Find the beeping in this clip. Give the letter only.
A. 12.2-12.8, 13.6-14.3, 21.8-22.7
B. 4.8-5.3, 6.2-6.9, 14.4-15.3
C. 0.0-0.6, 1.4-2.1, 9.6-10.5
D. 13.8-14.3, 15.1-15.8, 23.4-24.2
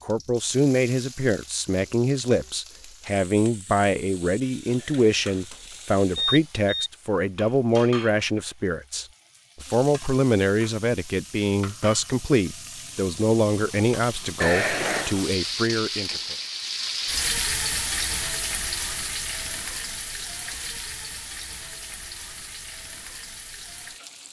B.